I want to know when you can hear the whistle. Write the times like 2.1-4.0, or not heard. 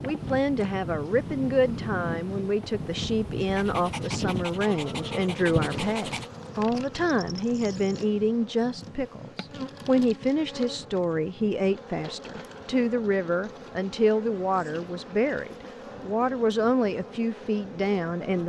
not heard.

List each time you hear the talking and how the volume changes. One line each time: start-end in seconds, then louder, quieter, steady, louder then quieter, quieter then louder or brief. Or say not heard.
0.0-18.4 steady.